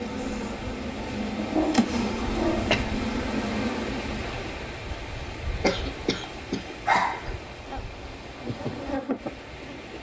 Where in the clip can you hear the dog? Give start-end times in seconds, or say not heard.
1.4-2.8, 6.8-7.8.